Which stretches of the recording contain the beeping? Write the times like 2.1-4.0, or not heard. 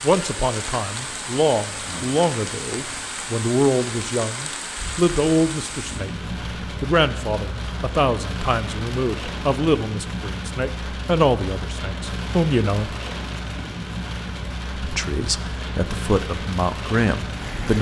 not heard.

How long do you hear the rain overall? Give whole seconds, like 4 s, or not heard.
18 s.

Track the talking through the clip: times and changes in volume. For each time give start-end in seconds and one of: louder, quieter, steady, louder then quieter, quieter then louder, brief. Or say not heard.
0.0-12.9 steady
14.8-17.7 brief.